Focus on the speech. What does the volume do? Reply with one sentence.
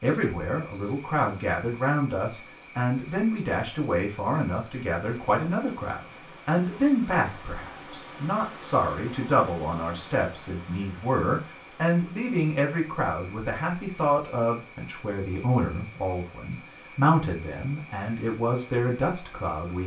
The volume of the speech stays about the same.